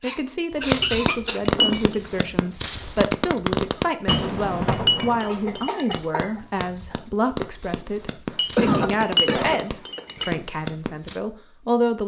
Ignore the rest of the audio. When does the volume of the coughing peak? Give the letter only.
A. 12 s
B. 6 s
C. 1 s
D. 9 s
D.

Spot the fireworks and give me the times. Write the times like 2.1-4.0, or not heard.
0.5-11.2.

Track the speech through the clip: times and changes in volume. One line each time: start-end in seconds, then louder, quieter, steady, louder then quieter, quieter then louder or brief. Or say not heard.
0.0-12.0 steady.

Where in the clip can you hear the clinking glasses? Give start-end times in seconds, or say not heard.
0.8-2.0, 4.0-6.0, 8.3-10.3.